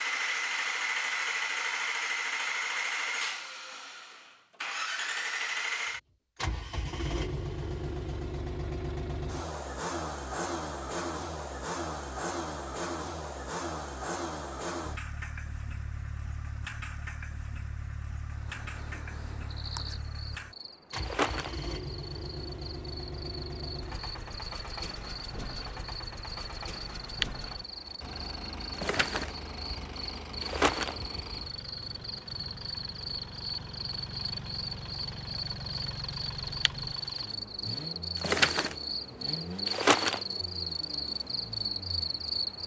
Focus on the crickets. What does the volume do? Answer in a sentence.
The loudness of the crickets goes up.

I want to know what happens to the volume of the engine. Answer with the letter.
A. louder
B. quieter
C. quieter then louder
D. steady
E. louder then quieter
B.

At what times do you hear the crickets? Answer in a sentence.
You can hear the crickets from 18.4 to 42.6 s.